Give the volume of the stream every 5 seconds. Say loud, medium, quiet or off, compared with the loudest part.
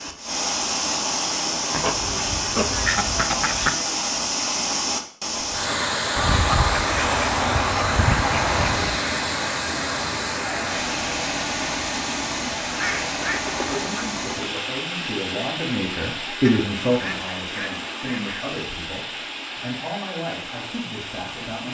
loud, loud, loud, medium, medium.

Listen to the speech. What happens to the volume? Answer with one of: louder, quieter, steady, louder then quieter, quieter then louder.
louder then quieter.